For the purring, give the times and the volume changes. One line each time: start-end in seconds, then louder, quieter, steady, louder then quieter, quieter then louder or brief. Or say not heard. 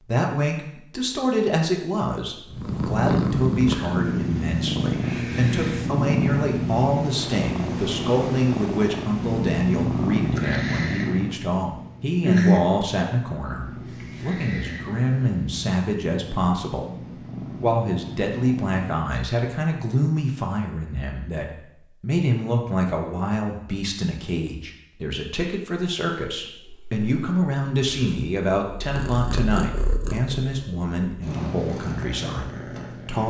2.5-19.1 quieter
26.6-33.2 louder.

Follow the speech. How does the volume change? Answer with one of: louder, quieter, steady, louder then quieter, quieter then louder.
steady.